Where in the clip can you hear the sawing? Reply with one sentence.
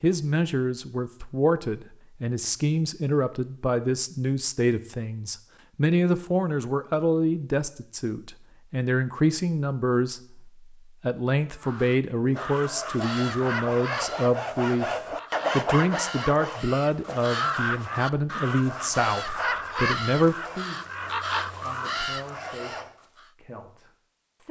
The sawing can be heard from 12.3 to 22.9 s.